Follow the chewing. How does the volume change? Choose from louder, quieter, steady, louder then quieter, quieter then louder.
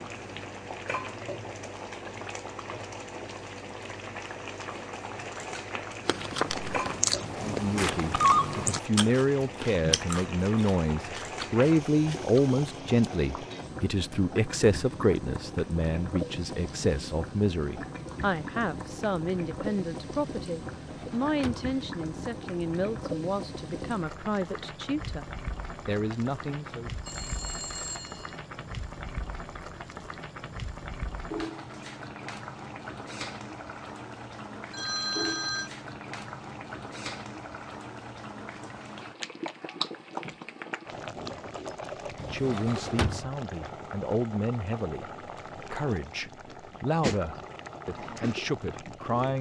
quieter.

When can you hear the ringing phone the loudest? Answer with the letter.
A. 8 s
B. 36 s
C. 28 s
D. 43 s
A.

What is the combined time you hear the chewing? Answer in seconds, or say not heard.
7 s.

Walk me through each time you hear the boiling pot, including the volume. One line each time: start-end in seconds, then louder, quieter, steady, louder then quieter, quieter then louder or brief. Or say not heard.
0.0-49.3 steady.